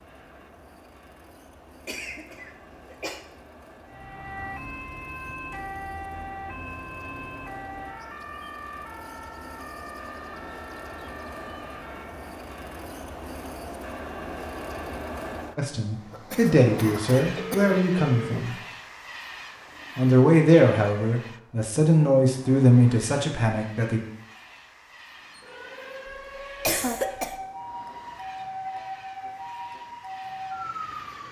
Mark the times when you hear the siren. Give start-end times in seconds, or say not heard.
3.9-12.3, 25.0-31.2.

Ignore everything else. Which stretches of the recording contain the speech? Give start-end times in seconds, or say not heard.
15.6-18.6, 19.9-24.0.